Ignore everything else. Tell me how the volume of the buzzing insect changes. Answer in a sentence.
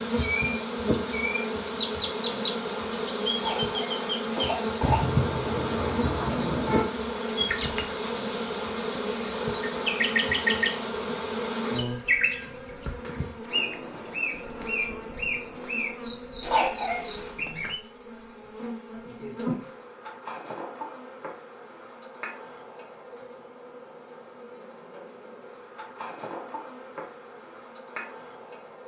The volume of the buzzing insect goes down.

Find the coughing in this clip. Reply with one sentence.
You can hear the coughing from 3.4 to 5.1 s and from 16.4 to 17.1 s.